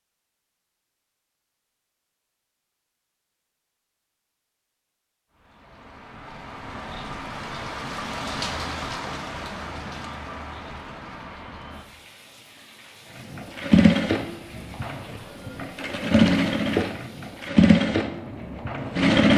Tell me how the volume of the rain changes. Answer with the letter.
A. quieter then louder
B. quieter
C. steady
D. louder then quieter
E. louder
A.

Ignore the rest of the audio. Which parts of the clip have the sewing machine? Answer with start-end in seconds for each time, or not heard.
13.3-19.3.